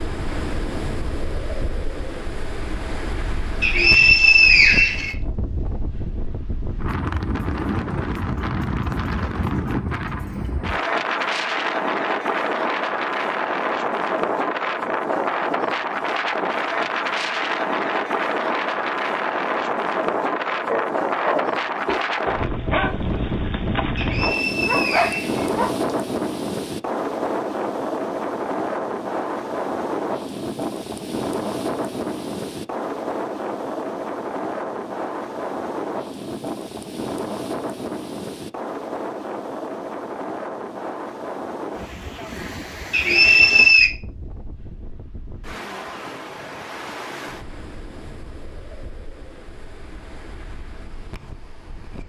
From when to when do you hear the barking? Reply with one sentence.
The barking can be heard from 20.6 to 25.7 s.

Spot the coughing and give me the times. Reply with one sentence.
The coughing can't be heard in this clip.